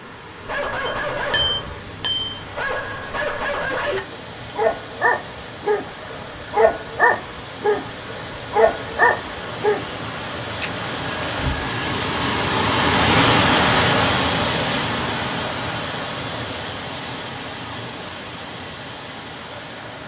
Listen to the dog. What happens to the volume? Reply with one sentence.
The loudness of the dog goes up.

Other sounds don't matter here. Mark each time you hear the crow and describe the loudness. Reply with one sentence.
The crow can't be heard in this clip.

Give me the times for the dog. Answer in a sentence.
The dog can be heard from 0.2 to 9.8 s.